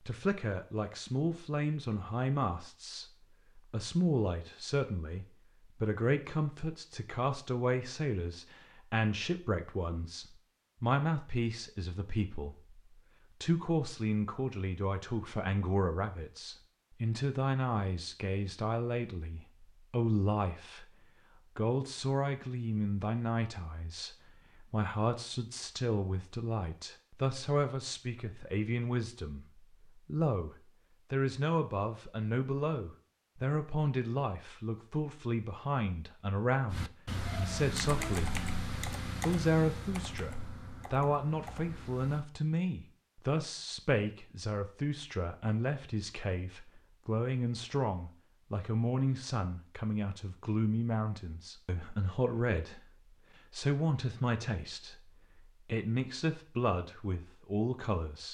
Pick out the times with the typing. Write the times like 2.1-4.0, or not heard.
36.7-42.2.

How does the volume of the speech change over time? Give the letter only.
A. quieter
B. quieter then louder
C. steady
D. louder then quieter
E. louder
C.